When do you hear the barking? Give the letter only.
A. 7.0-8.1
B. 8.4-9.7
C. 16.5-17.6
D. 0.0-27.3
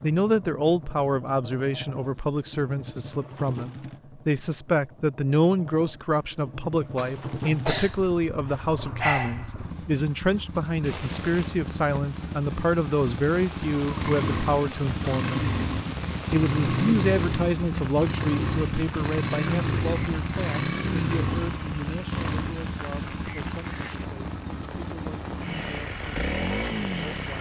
B.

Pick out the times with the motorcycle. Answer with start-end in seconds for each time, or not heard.
0.0-27.3.